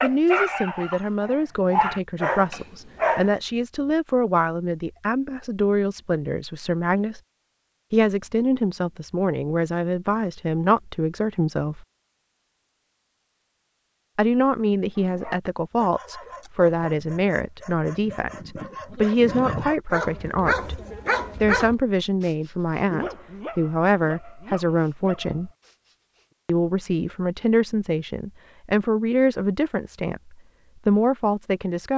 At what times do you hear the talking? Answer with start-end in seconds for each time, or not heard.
0.0-7.2, 7.9-11.8, 14.2-25.5, 26.4-31.9.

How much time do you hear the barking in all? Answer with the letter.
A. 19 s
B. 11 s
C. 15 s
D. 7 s
C.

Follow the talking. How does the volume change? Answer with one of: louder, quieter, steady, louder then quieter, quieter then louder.
steady.